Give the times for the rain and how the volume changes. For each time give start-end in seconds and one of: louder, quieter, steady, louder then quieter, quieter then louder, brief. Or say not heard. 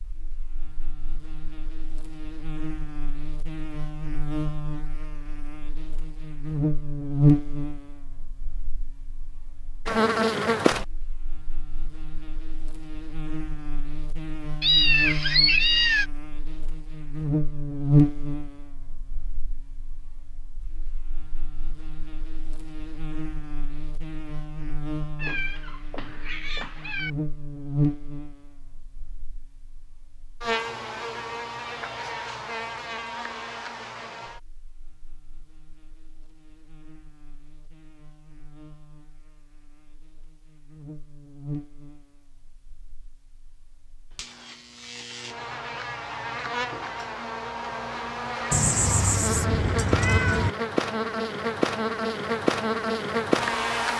not heard.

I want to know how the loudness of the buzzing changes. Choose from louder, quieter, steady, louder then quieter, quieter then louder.
quieter then louder.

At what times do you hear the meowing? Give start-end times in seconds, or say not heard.
14.6-16.1, 25.1-27.1, 48.5-50.5.